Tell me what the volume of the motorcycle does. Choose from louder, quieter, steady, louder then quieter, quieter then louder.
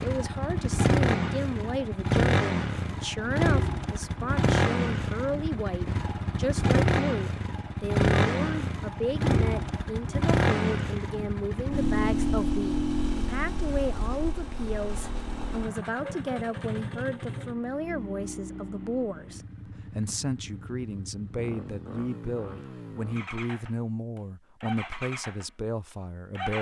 quieter.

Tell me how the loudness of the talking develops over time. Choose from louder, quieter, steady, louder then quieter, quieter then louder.
steady.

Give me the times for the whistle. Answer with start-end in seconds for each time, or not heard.
not heard.